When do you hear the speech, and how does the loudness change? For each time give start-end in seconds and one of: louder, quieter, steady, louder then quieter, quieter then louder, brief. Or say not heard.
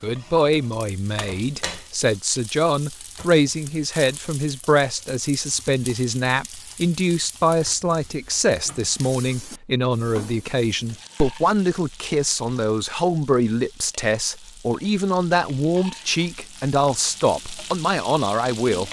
0.0-18.8 steady.